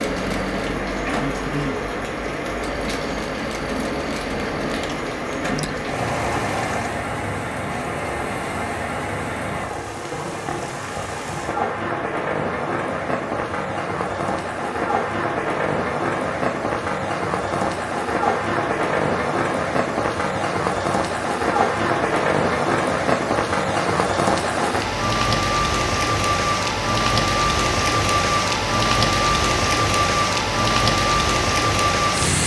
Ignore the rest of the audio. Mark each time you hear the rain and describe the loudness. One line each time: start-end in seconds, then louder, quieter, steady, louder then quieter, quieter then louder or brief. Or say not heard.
0.0-32.4 louder.